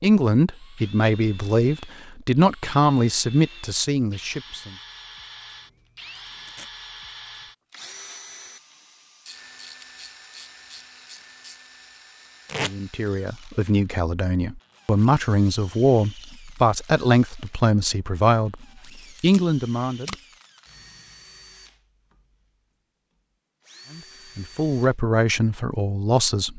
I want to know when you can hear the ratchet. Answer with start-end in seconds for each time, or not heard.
9.2-11.7.